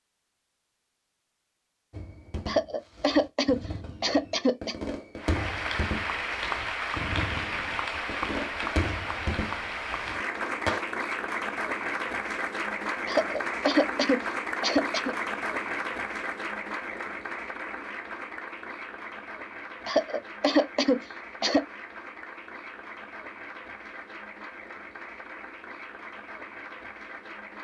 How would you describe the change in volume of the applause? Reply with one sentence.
The loudness of the applause goes down.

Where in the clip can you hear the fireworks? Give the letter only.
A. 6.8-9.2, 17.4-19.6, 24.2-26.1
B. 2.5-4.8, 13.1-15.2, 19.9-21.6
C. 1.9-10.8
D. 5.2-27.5
C.